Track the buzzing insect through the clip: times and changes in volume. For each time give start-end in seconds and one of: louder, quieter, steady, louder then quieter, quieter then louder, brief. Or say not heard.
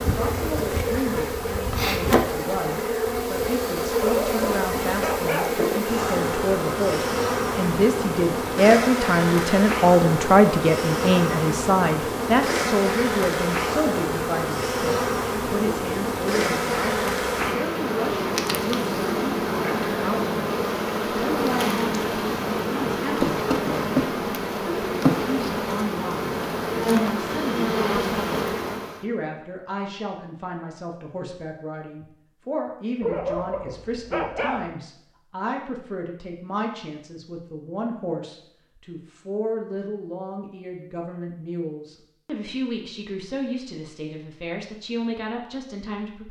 0.0-29.1 steady.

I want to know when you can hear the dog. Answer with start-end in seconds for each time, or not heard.
3.9-5.7, 33.0-34.8.